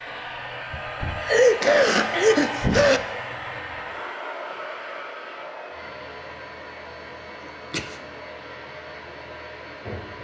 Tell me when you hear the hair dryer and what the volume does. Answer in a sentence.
You can hear the hair dryer from 0.0 to 10.1 s, getting quieter.